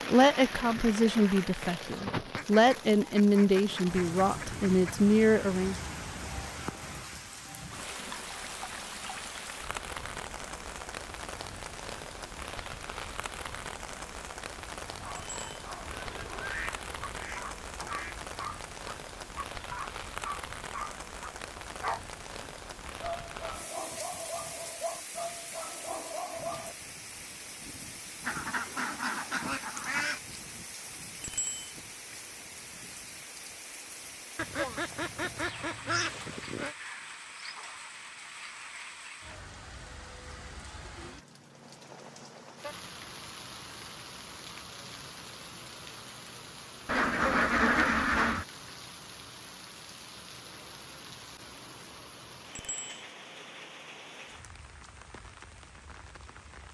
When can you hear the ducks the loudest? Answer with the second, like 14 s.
48 s.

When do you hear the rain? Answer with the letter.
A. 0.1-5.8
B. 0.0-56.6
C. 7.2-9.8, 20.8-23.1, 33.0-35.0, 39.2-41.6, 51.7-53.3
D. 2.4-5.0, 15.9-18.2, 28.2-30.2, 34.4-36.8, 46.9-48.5
B.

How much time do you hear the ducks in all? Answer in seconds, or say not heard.
11 s.